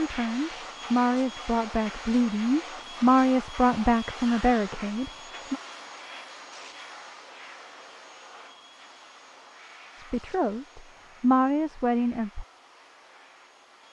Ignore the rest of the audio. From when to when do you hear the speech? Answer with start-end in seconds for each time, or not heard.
0.0-5.6, 9.9-12.4.